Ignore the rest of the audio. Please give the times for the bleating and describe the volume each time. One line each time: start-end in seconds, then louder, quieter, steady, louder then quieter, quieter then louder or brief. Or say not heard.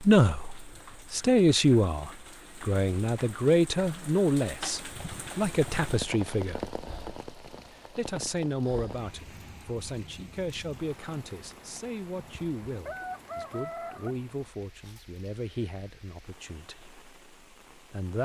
not heard.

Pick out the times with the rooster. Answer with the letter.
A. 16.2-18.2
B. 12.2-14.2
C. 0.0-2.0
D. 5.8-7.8
B.